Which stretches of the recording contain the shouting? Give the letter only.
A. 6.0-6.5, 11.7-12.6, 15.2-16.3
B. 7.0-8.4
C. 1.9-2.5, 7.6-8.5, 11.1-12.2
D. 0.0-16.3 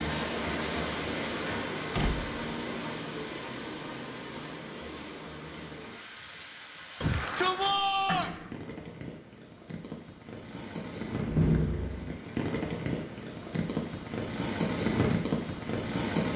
B.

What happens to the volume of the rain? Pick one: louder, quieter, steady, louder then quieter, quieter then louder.
quieter then louder.